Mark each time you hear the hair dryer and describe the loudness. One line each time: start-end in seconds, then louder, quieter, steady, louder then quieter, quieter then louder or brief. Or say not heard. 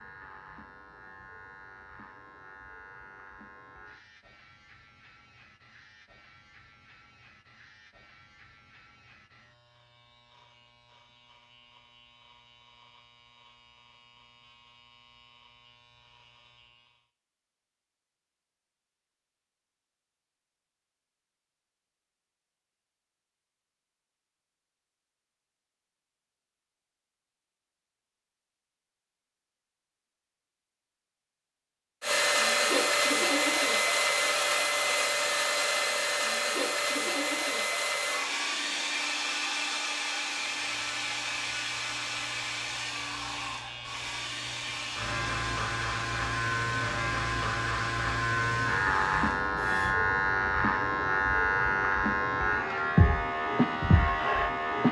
32.0-50.0 quieter.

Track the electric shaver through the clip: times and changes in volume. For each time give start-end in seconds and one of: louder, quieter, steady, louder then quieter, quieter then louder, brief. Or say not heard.
0.0-17.1 quieter
40.2-54.8 louder.